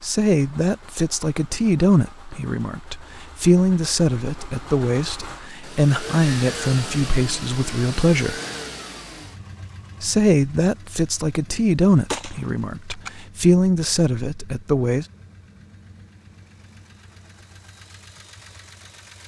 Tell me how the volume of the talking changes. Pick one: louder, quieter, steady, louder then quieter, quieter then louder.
steady.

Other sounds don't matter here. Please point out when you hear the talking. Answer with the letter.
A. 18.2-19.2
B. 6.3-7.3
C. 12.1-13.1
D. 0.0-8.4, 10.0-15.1
D.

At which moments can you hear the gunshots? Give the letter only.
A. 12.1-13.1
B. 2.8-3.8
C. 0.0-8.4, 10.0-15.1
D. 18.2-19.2
A.